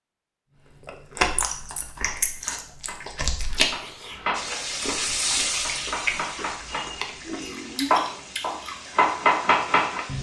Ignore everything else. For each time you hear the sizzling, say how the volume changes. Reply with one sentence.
The sizzling can be heard from 4.3 to 10.1 s, getting quieter.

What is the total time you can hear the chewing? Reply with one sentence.
You can hear the chewing for 8 seconds altogether.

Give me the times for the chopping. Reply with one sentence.
The chopping can be heard from 1.9 to 10.1 s.